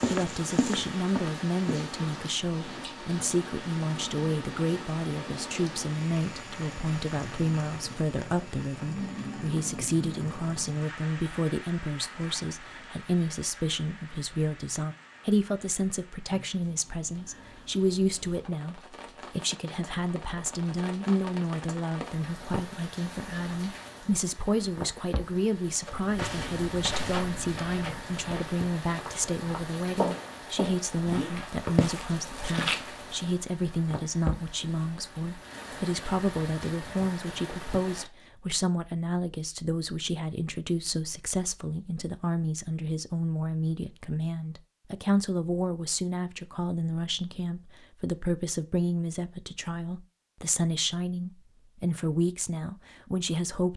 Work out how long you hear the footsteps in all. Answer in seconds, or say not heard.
9 s.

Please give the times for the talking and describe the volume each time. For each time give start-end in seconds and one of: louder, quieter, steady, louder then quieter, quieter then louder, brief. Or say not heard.
0.1-53.7 steady.